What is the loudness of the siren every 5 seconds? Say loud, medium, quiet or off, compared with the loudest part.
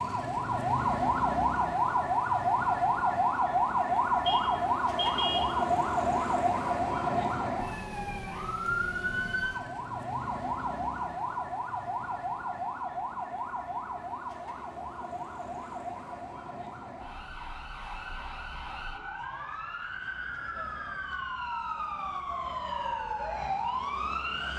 loud, loud, medium, quiet, medium.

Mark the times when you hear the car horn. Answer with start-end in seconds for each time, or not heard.
4.2-5.6.